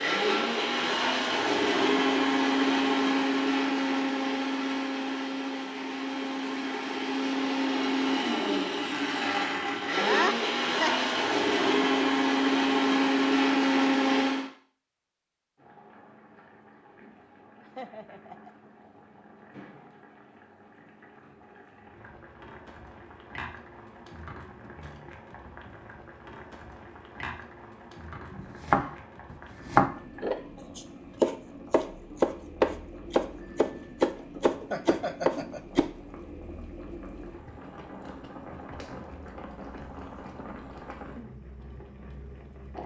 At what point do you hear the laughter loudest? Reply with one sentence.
The loudest moment of the laughter is at 10 seconds.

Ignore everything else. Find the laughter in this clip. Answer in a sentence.
You can hear the laughter from 9.9 to 11.1 s, from 17.6 to 18.5 s and from 34.7 to 35.6 s.